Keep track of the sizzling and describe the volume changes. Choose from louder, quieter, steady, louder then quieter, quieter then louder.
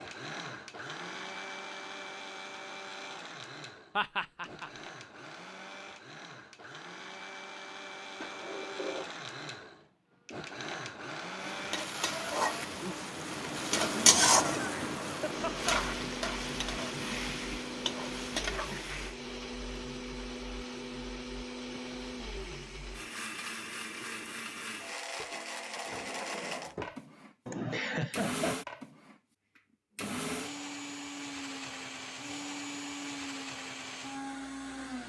louder then quieter.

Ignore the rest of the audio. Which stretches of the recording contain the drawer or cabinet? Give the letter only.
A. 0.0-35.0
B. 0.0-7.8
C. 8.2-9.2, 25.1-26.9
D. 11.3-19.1
C.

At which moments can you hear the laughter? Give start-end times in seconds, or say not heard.
4.0-4.7, 13.8-15.7, 27.4-28.6.